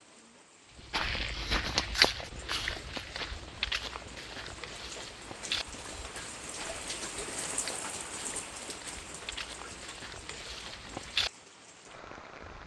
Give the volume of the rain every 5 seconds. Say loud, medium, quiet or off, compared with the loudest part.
medium, loud, medium.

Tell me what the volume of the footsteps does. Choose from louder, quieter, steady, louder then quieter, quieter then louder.
quieter then louder.